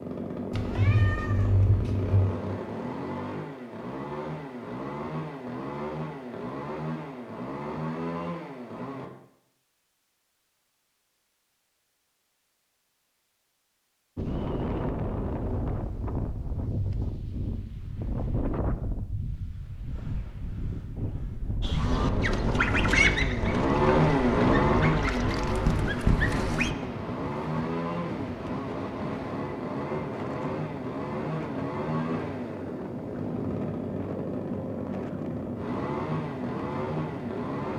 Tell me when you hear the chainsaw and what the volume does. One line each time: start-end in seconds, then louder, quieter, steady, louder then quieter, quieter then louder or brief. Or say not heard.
0.0-9.1 steady
21.9-37.7 quieter.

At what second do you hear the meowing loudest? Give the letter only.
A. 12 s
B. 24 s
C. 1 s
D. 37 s
C.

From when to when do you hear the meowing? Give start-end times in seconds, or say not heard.
0.5-2.3.